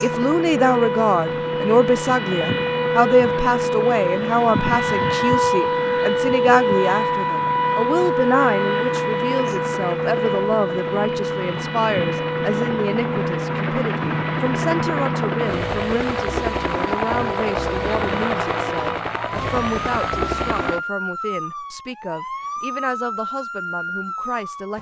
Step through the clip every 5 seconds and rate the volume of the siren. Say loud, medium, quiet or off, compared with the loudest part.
loud, loud, medium, medium, medium.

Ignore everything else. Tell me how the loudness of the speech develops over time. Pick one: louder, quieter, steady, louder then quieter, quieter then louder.
quieter.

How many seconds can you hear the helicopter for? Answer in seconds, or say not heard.
21 s.